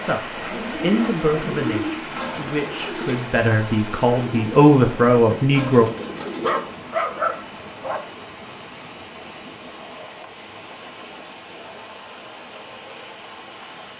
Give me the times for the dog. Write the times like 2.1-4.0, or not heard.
6.4-8.0.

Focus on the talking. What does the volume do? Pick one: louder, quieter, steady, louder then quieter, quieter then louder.
quieter then louder.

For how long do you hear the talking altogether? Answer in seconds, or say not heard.
6 s.